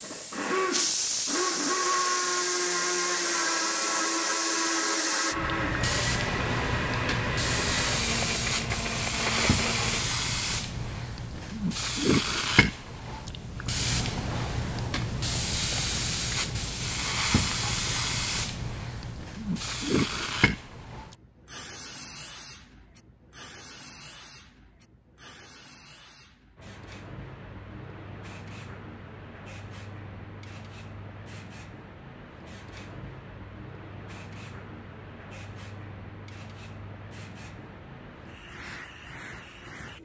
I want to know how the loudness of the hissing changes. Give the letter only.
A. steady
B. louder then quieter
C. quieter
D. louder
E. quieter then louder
C.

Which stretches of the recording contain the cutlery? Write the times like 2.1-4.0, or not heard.
not heard.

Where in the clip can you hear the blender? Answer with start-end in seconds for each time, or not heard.
0.0-10.1.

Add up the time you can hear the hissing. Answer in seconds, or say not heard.
40 s.